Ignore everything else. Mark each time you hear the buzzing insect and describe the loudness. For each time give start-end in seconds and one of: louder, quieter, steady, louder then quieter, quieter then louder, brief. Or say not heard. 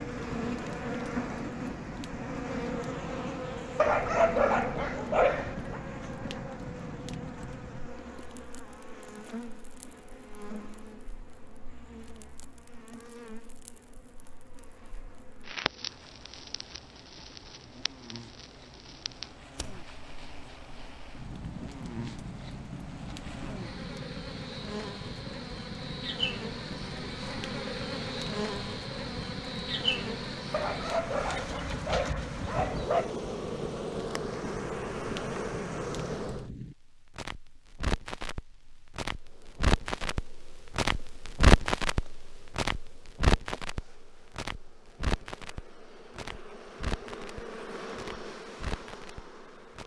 0.0-36.5 quieter then louder
39.1-49.8 louder.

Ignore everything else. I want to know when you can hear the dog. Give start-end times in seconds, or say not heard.
3.8-5.8, 30.5-33.1.